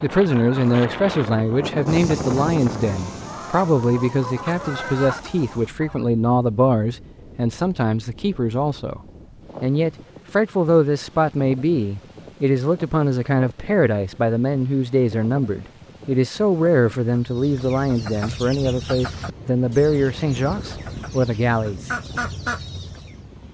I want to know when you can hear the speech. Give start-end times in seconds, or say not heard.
0.0-9.0, 9.6-21.9.